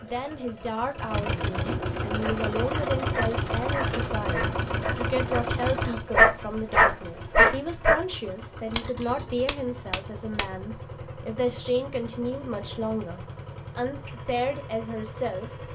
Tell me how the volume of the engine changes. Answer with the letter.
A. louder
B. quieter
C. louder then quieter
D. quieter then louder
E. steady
B.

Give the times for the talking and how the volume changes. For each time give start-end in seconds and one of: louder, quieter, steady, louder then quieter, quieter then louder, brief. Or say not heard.
0.0-15.5 steady.